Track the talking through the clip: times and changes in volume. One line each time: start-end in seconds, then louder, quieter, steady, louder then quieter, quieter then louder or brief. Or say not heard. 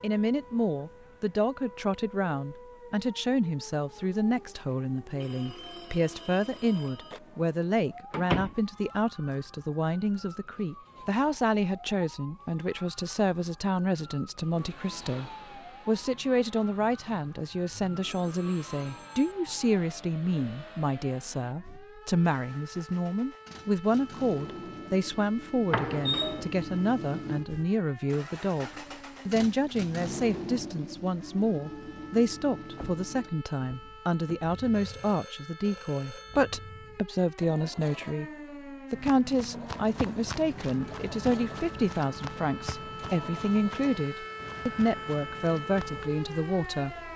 0.0-38.3 steady
38.9-47.1 steady.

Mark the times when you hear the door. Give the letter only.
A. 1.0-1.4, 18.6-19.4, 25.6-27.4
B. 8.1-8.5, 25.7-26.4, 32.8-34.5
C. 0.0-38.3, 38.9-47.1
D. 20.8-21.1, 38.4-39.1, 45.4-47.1
B.